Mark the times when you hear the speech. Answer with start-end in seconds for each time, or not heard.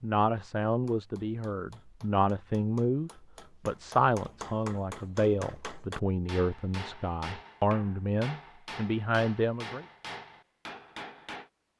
0.0-9.8.